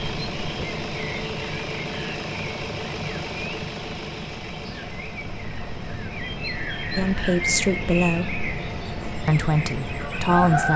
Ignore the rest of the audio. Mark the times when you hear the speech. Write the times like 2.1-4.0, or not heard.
7.0-8.3, 9.2-10.7.